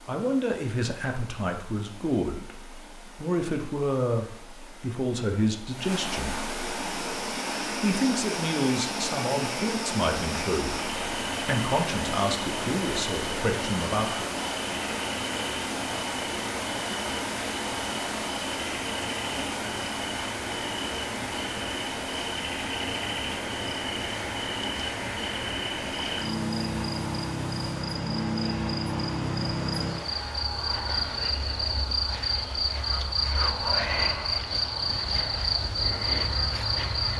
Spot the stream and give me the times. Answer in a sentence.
The stream can be heard from 0.0 to 37.1 s.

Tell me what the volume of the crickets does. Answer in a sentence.
The volume of the crickets goes up.